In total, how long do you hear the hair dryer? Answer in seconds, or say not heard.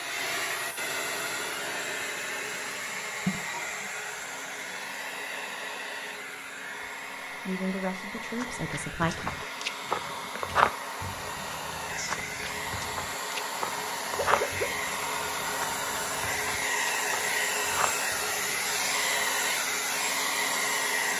21 s.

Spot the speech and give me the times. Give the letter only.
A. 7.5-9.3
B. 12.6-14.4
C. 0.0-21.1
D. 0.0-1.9
A.